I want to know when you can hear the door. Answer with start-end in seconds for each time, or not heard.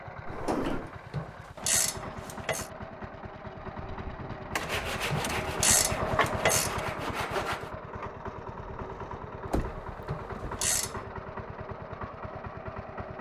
0.2-0.9, 4.5-5.5, 9.5-10.5.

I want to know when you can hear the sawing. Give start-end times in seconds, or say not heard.
4.5-7.8.